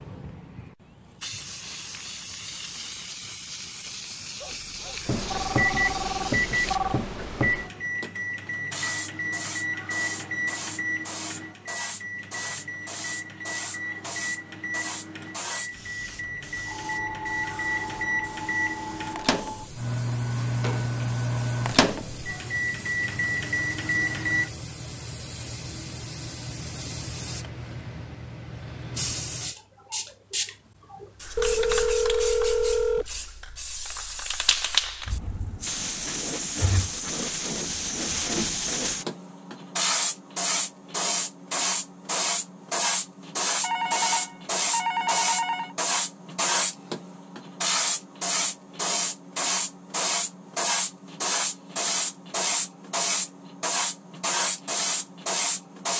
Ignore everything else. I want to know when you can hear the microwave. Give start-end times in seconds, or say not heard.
5.0-24.5.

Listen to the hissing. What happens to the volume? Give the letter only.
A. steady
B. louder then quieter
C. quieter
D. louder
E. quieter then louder
D.